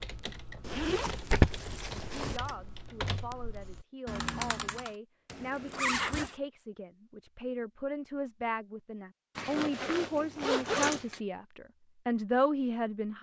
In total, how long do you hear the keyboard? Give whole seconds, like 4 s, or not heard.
5 s.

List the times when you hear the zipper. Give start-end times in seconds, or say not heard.
0.6-2.4, 5.2-6.3, 9.3-11.2.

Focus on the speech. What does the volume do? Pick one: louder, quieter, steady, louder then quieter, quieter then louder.
louder.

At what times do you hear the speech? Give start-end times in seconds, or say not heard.
1.9-13.1.